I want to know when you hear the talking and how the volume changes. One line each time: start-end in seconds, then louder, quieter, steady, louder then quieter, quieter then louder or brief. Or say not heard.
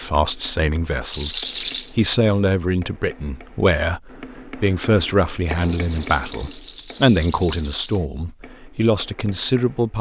0.0-9.9 steady.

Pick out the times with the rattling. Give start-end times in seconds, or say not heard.
1.1-1.9, 5.5-8.1.